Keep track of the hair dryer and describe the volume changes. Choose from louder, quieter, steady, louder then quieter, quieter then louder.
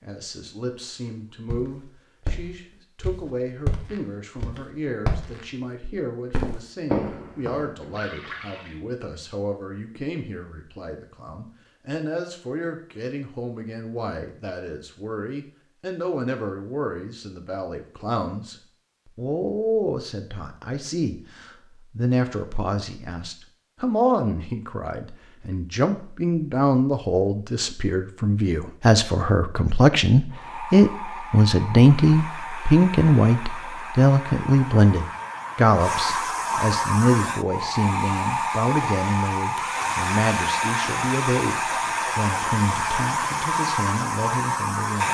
louder.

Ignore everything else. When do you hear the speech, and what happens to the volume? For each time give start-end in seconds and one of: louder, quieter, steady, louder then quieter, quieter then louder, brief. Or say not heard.
0.0-45.0 louder then quieter.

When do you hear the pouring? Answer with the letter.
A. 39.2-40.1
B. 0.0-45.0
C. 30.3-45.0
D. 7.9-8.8
D.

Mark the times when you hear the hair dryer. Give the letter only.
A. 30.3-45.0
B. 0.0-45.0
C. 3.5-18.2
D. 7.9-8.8
A.